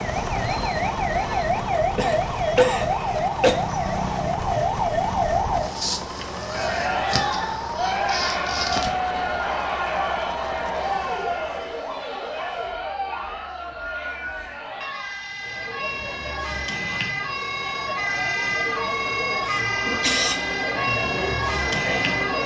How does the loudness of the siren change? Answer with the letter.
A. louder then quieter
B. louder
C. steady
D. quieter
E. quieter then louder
E.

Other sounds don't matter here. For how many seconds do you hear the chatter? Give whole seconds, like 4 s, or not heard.
16 s.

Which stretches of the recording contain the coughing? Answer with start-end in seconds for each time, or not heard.
1.8-3.5, 19.4-20.4.